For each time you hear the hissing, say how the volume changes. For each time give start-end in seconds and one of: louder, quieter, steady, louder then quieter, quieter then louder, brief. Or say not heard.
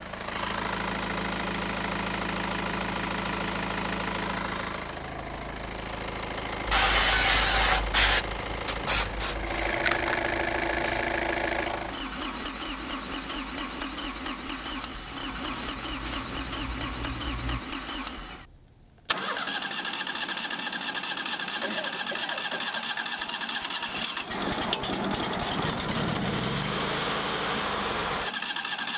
6.7-11.1 quieter
14.7-17.6 brief.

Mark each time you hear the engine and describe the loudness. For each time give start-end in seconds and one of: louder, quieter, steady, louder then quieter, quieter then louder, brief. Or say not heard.
0.0-28.9 steady.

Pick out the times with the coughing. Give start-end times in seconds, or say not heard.
21.6-22.9.